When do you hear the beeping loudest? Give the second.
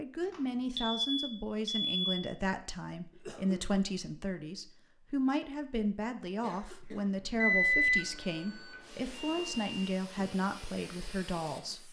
8 s.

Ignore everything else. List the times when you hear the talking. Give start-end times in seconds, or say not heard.
0.0-11.8.